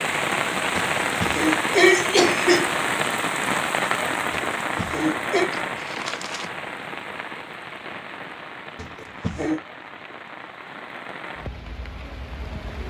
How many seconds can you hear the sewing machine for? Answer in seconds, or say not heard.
not heard.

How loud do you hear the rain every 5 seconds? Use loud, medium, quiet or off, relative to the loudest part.
loud, medium, quiet.